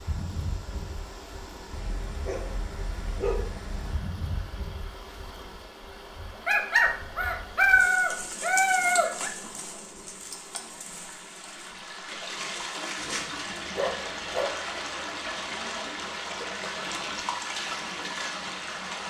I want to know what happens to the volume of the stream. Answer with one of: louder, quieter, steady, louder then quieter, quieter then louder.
louder.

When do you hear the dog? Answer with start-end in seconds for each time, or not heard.
1.7-4.1, 6.5-9.3, 12.9-14.6.